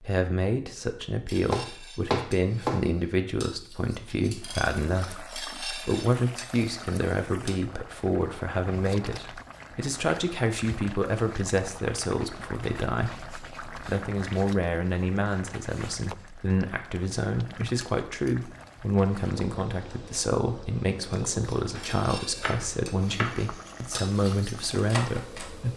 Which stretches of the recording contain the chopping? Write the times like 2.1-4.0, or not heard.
1.4-2.9, 21.8-23.4.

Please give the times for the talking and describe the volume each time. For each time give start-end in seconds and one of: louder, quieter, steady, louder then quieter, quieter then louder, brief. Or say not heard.
0.0-25.7 steady.